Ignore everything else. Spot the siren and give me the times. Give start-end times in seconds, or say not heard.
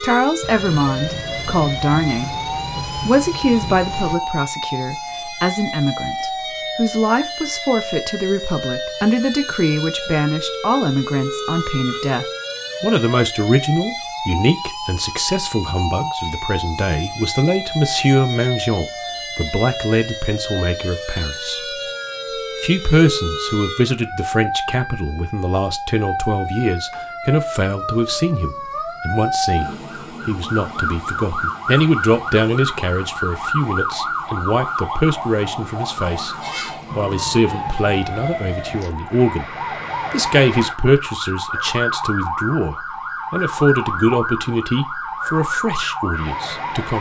0.0-46.9.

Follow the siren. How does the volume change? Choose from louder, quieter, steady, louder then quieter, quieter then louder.
steady.